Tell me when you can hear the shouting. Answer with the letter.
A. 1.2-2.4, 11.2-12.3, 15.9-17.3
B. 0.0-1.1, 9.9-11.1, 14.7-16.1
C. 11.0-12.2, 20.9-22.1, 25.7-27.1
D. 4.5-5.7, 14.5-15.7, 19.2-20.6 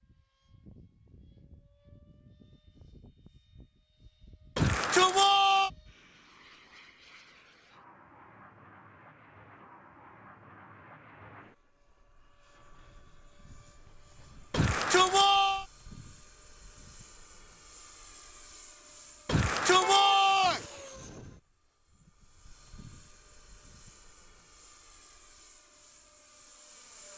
D.